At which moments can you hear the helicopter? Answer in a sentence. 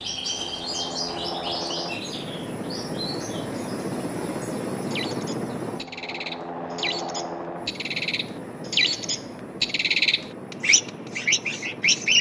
The helicopter can be heard from 0.0 to 12.1 s.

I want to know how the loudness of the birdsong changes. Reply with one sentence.
The volume of the birdsong goes down, then up.